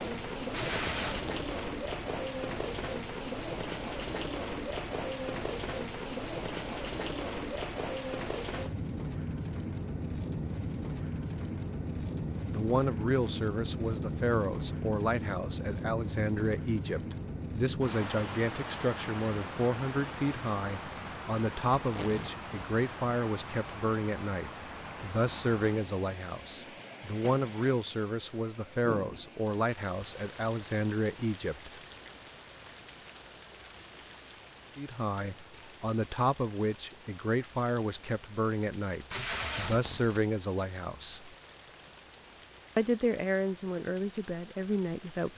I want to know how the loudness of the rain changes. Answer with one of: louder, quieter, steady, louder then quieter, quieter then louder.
quieter.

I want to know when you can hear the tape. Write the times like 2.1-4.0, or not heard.
0.5-1.5, 21.8-22.4, 39.1-40.2.